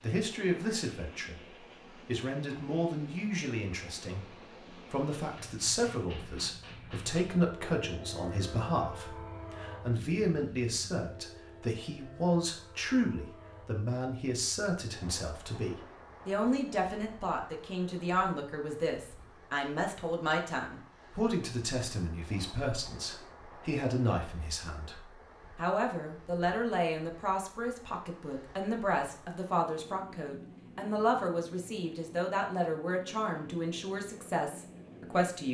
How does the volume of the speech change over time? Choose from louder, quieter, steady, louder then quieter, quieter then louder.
steady.